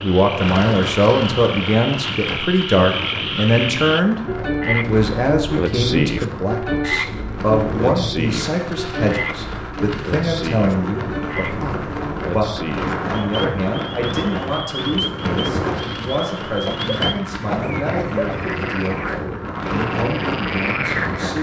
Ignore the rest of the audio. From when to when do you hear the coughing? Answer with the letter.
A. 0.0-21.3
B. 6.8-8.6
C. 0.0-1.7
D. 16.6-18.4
D.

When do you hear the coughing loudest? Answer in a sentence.
The loudest moment of the coughing is at 18 seconds.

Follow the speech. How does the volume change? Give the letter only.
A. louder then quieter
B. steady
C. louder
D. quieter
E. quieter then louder
D.